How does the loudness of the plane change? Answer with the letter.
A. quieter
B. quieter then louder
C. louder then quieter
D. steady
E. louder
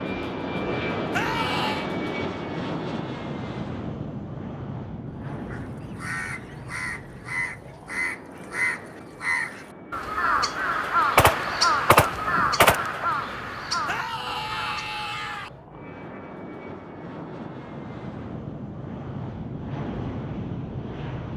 B.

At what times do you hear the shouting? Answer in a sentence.
The shouting can be heard from 1.1 to 1.9 s and from 13.8 to 15.5 s.